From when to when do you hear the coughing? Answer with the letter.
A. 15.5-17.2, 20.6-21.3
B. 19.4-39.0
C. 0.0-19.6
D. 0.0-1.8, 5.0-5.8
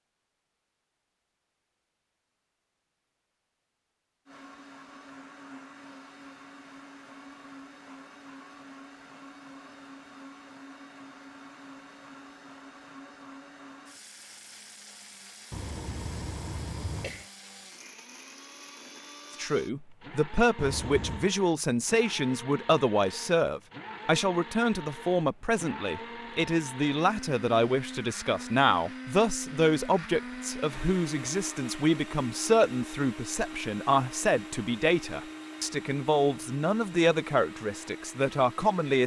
A.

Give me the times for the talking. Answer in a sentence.
You can hear the talking from 19.4 to 39.0 s.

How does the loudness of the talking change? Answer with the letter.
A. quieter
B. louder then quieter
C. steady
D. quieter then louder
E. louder
C.